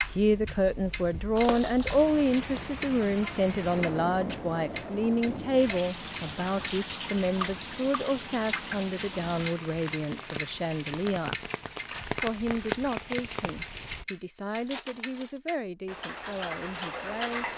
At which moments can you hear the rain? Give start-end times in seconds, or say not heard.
0.0-14.1.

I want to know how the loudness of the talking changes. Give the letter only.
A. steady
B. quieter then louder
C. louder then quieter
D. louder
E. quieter
E.